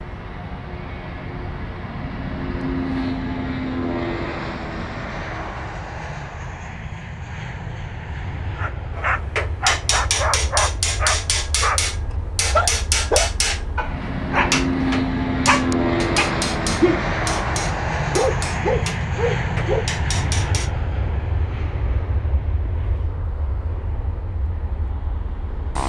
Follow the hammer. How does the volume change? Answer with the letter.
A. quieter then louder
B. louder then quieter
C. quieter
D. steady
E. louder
C.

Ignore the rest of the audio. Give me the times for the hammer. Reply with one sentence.
You can hear the hammer from 8.9 to 20.7 s.